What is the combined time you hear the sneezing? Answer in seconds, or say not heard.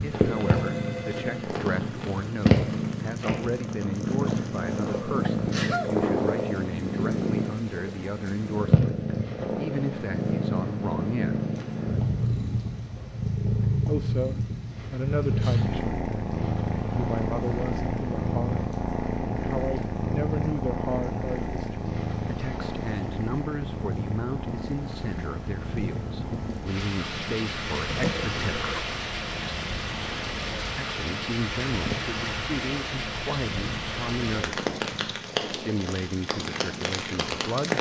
3 s.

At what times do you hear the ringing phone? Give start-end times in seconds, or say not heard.
0.2-1.4.